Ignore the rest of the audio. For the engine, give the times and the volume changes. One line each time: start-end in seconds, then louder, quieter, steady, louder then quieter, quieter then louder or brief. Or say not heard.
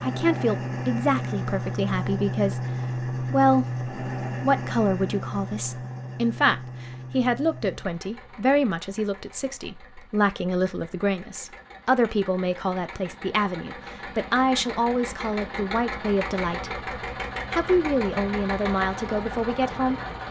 0.0-20.2 quieter then louder.